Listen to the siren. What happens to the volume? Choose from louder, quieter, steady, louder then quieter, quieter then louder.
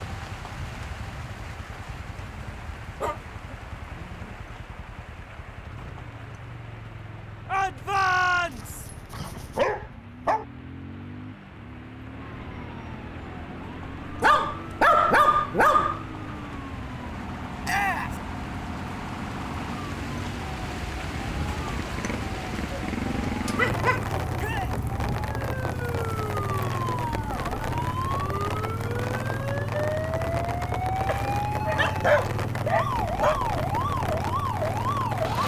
louder.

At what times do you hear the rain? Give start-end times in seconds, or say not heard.
0.0-35.4.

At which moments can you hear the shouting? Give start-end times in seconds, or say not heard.
7.5-8.8, 17.6-18.2, 24.4-24.8.